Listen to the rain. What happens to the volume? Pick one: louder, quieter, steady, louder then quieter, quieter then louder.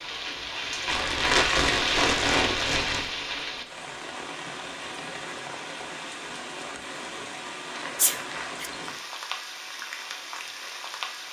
quieter.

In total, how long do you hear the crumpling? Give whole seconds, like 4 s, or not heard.
4 s.